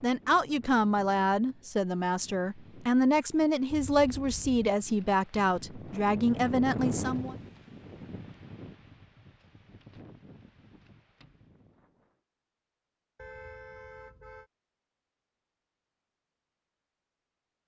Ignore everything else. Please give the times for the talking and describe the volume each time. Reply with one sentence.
The talking can be heard from 0.0 to 7.3 s, at a steady volume.